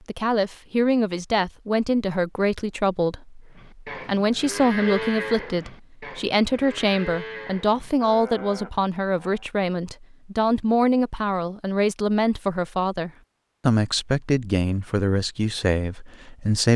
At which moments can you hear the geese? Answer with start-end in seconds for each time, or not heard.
not heard.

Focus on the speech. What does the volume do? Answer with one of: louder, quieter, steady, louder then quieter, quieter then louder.
steady.